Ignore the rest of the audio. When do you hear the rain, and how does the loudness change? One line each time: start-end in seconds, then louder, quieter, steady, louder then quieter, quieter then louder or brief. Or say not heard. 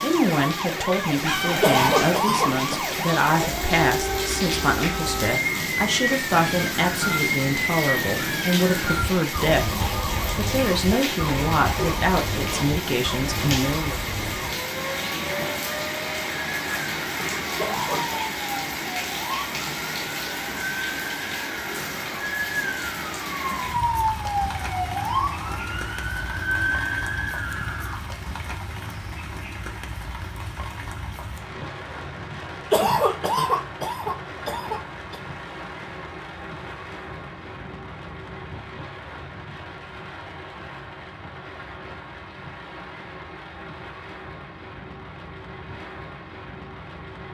0.0-47.2 quieter.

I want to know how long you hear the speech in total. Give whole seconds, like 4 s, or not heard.
14 s.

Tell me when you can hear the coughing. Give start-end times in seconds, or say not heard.
1.6-2.8, 17.6-18.3, 32.7-35.1.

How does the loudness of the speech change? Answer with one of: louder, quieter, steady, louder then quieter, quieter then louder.
steady.